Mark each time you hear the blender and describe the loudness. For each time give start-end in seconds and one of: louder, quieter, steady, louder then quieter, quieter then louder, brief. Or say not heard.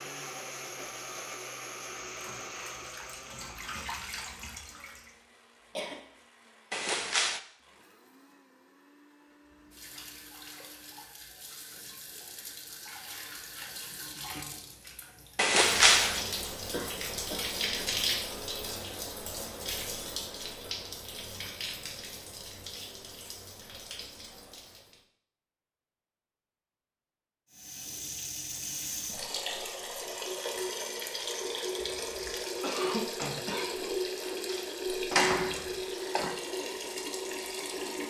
0.0-11.1 quieter.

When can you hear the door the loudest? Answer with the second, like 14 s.
16 s.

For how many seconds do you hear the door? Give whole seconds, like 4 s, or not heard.
4 s.